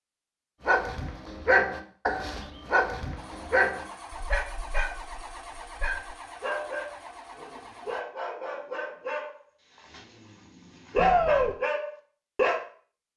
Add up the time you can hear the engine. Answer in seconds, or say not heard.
5 s.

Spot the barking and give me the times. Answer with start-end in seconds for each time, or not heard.
0.7-12.6.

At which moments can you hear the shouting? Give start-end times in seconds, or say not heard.
10.9-11.6.